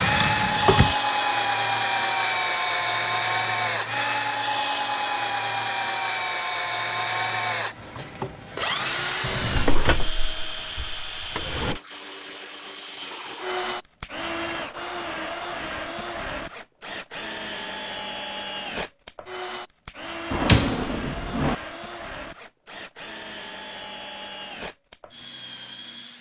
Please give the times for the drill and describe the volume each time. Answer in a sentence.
You can hear the drill from 0.0 to 26.1 s, getting quieter.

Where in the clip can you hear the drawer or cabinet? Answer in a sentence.
You can hear the drawer or cabinet from 0.0 to 0.9 s, from 9.2 to 11.8 s and from 20.3 to 21.6 s.